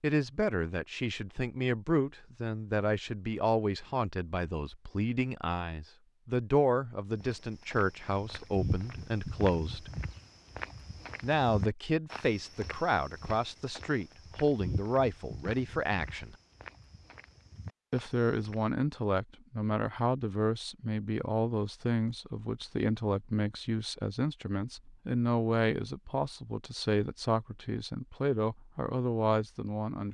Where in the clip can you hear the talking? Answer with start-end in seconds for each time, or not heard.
0.0-9.9, 11.2-16.4, 17.9-30.0.